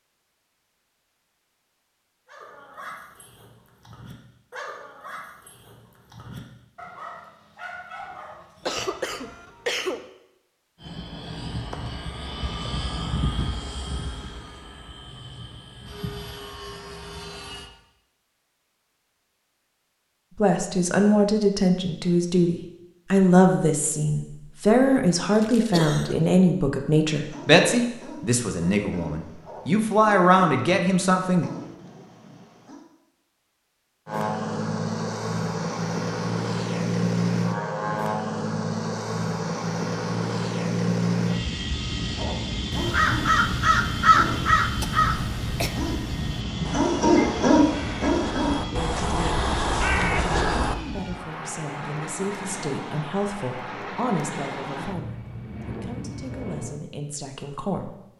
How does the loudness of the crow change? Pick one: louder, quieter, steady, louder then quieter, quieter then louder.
quieter then louder.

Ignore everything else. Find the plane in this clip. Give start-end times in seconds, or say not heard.
10.8-17.7, 34.0-56.8.